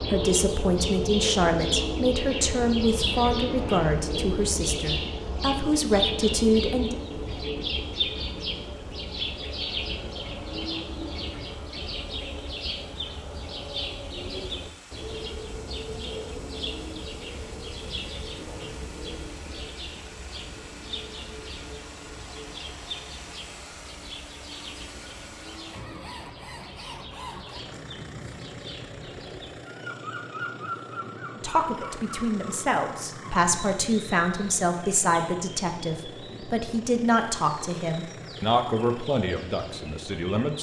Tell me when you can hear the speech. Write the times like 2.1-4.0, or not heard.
0.0-7.0, 31.4-40.5.